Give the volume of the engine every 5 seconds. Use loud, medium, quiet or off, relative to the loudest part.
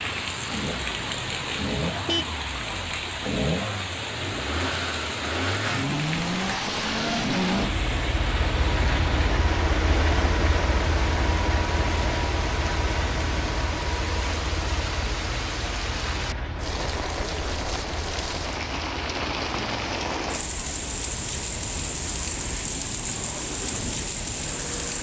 medium, loud, loud, medium, quiet.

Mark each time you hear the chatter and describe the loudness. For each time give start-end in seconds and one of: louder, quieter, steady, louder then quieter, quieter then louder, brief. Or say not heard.
not heard.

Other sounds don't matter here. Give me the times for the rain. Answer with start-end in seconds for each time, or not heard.
0.0-24.9.